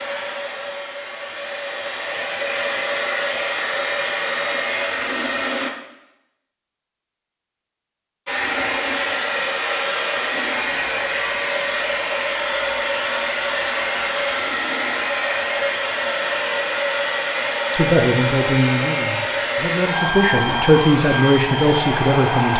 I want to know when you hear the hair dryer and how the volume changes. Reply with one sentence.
You can hear the hair dryer from 0.0 to 5.7 s, getting louder; and from 8.2 to 22.5 s, at a steady volume.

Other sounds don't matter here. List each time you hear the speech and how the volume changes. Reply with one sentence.
You can hear the speech from 17.7 to 22.5 s, getting quieter then louder.